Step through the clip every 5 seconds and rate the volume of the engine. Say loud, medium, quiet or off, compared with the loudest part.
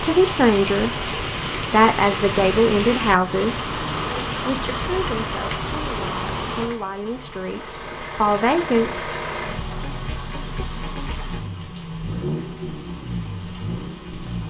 off, loud, loud.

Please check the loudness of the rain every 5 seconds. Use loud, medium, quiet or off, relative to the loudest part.
loud, loud, quiet.